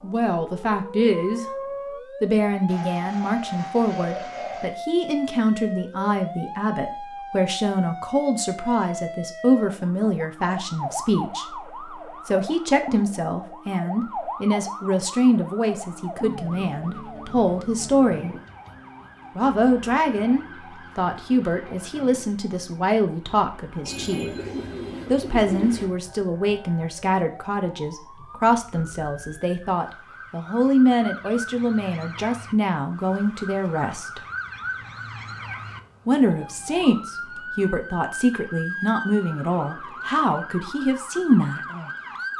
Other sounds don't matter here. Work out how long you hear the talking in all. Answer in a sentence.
The talking can be heard for 37 seconds in total.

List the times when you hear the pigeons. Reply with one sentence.
The pigeons can be heard from 2.6 to 4.8 s and from 23.9 to 25.9 s.